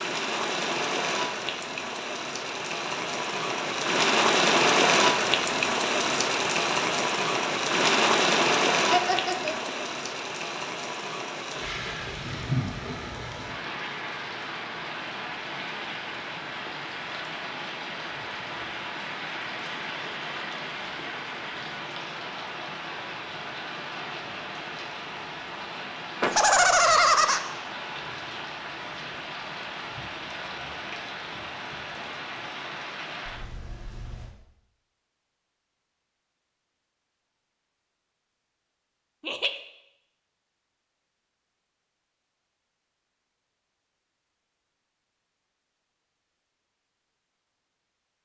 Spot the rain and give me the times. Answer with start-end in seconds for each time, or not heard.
0.0-34.4.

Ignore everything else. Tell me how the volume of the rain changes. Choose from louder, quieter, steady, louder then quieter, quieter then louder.
quieter.